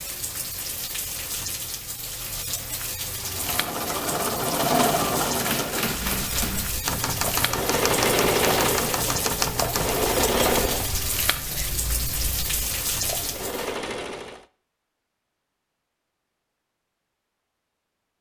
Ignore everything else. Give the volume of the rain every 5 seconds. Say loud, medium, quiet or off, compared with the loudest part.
loud, loud, loud, off.